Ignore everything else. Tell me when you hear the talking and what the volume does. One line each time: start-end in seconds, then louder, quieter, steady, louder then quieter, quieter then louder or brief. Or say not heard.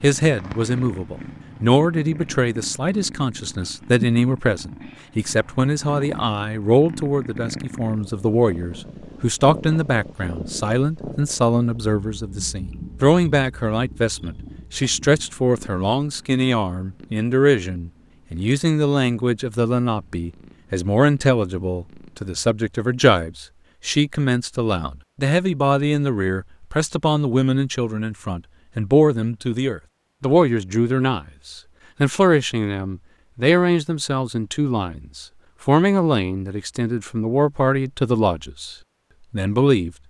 0.0-39.9 steady.